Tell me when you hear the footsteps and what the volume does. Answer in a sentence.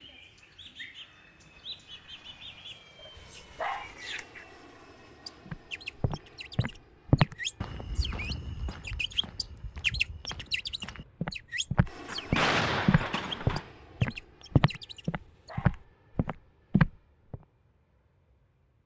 You can hear the footsteps from 5.5 to 17.4 s, getting quieter then louder.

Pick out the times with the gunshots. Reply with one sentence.
The gunshots can be heard from 12.1 to 13.7 s.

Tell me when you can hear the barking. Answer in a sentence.
The barking can be heard from 3.1 to 4.0 s and from 15.1 to 15.8 s.